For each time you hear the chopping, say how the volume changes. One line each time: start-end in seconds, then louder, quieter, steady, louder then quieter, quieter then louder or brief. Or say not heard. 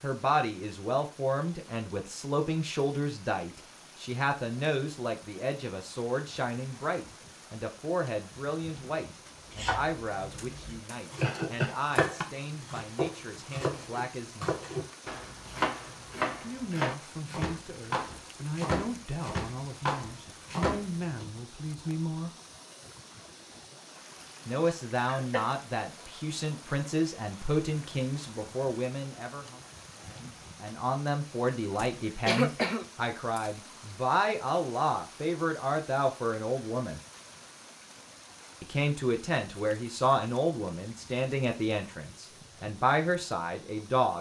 9.4-21.2 louder.